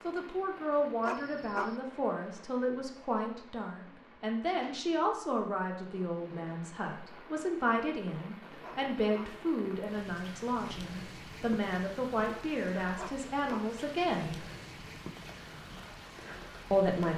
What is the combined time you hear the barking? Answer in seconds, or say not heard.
2 s.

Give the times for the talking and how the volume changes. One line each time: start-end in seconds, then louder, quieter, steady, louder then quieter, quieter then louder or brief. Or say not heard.
0.0-14.4 steady
16.7-17.1 brief.